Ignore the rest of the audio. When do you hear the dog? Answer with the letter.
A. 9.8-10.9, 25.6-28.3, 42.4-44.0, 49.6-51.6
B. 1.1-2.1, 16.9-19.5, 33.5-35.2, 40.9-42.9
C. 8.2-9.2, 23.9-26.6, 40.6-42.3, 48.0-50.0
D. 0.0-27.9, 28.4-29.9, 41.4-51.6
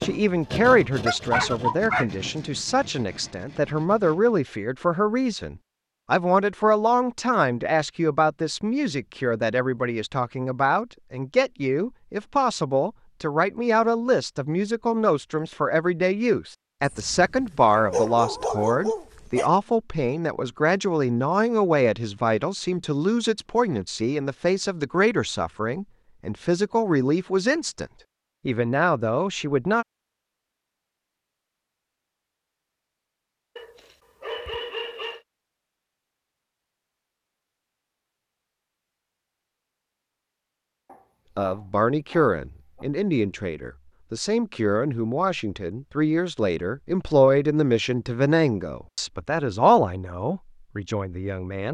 B.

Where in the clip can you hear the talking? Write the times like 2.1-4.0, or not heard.
0.0-27.9, 28.4-29.9, 41.4-51.6.